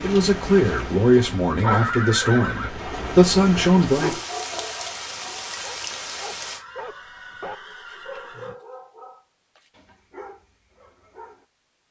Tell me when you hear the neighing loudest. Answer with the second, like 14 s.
2 s.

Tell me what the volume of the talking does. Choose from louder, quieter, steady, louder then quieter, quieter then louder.
quieter then louder.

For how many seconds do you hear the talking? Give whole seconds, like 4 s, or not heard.
4 s.